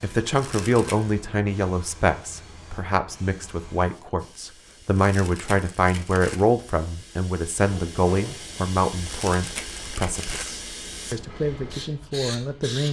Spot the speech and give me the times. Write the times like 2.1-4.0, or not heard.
0.0-12.8.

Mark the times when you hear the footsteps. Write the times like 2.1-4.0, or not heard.
not heard.